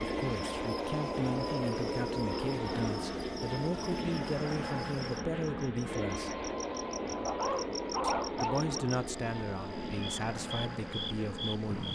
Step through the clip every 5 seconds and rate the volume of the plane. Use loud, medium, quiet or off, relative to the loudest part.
loud, loud, medium.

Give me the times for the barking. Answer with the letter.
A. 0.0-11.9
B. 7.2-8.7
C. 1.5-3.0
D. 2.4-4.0
B.